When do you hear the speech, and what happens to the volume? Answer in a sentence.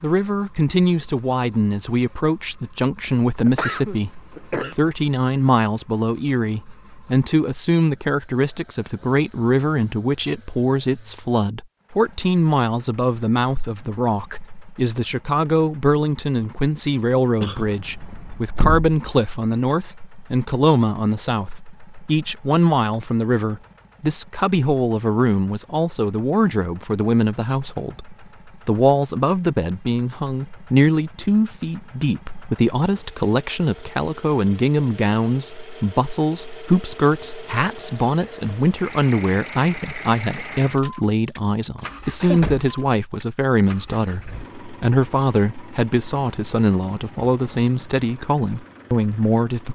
You can hear the speech from 0.0 to 49.6 s, at a steady volume.